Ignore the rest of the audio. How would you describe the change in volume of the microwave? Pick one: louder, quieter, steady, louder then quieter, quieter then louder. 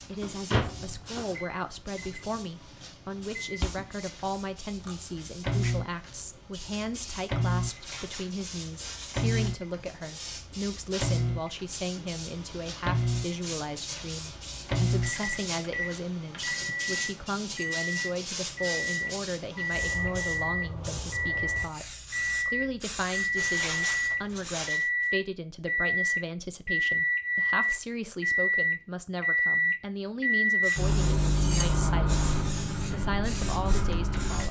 louder.